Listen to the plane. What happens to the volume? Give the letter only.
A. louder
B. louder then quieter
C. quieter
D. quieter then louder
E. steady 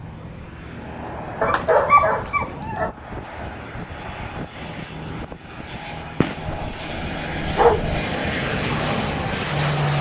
A.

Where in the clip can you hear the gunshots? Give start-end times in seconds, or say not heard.
6.2-6.7.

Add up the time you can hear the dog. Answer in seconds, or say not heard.
3 s.